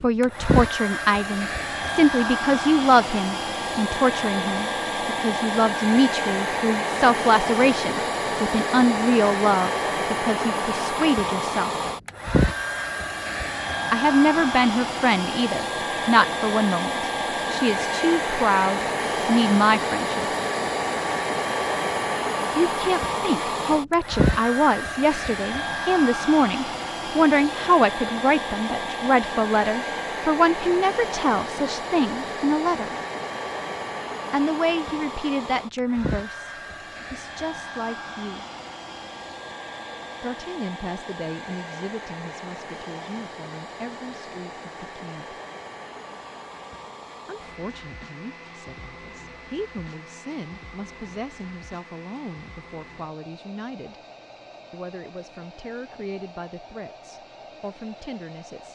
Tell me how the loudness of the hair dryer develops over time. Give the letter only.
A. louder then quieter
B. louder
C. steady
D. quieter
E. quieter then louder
D.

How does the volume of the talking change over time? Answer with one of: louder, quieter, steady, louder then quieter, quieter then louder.
quieter.